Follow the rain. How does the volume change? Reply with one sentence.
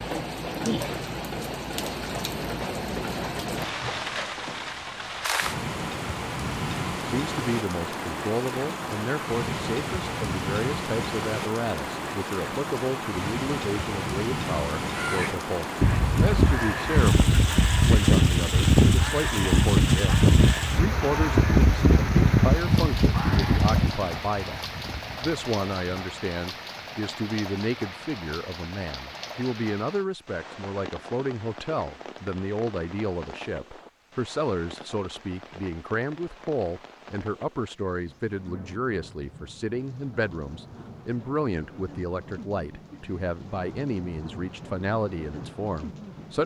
The loudness of the rain goes down.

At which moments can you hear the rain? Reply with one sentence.
You can hear the rain from 0.0 to 46.4 s.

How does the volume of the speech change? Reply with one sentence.
The loudness of the speech stays about the same.